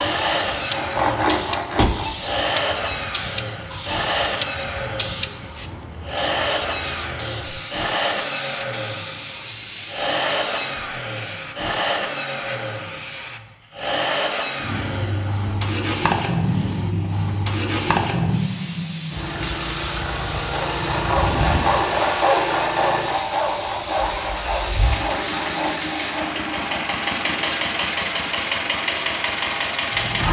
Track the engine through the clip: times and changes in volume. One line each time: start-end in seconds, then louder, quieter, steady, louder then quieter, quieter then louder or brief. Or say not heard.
0.0-30.2 steady.